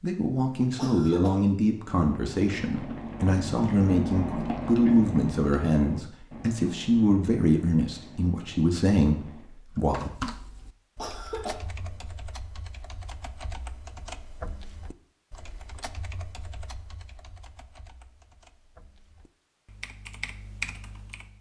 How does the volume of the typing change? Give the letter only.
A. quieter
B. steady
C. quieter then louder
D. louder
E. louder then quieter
C.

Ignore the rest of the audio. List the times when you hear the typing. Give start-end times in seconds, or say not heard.
9.8-21.3.